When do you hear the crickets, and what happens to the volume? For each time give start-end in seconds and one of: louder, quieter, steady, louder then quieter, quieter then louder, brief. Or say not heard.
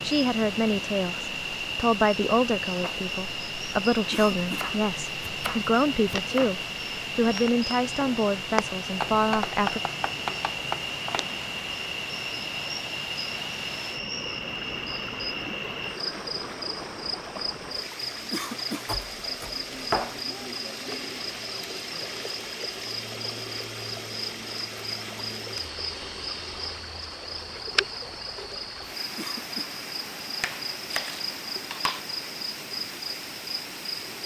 0.0-34.2 steady.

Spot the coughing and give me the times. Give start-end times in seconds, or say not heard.
4.1-4.7, 18.3-18.9, 29.1-29.7.